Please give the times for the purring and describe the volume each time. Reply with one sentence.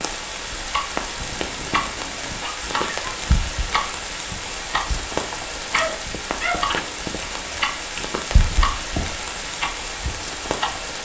The purring can't be heard in this clip.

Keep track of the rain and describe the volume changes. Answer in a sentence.
The volume of the rain stays about the same.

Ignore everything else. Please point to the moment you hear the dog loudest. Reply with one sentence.
The volume of the dog peaks at 7 seconds.